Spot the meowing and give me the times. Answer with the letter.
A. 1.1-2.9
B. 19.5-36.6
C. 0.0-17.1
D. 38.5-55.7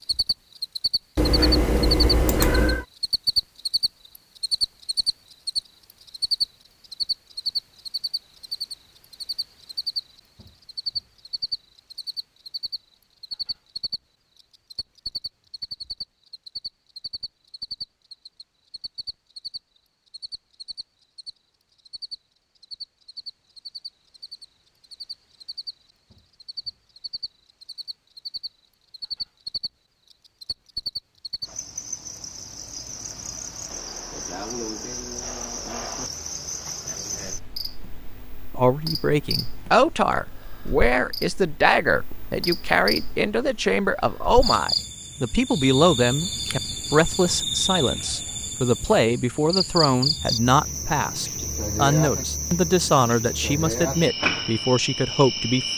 A.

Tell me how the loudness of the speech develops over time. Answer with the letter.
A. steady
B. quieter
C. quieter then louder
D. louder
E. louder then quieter
A.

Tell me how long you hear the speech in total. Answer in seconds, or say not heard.
17 s.